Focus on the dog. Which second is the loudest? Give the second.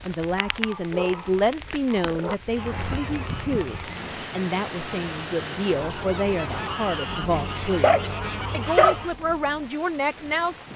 9 s.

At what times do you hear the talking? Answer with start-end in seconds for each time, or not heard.
0.0-10.7.